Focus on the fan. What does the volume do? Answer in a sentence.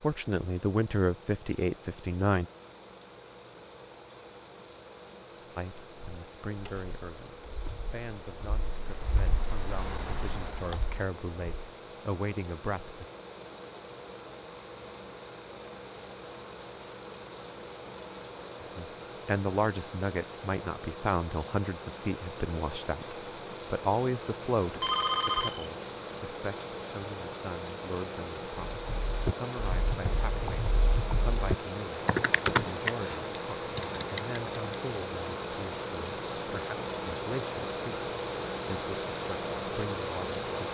The loudness of the fan goes up.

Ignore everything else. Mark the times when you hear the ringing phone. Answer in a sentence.
You can hear the ringing phone from 24.8 to 25.7 s.